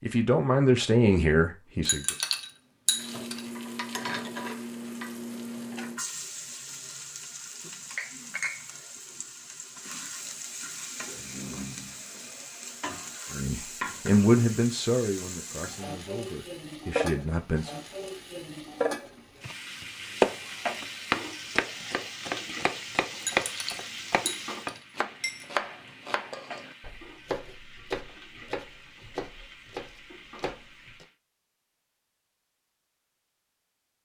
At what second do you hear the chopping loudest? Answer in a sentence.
The volume of the chopping peaks at 20 seconds.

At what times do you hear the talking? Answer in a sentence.
The talking can be heard from 0.0 to 2.1 s and from 13.3 to 17.7 s.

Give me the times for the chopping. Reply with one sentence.
The chopping can be heard from 19.4 to 31.1 s.